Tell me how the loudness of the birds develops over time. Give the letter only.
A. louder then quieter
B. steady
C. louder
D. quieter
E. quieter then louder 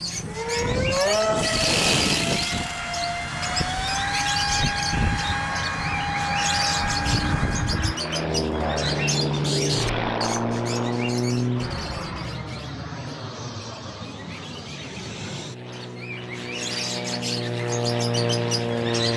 E.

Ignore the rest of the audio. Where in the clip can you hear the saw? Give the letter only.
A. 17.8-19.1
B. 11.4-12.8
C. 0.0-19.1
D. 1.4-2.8
D.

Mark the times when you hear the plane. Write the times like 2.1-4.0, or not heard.
0.0-19.1.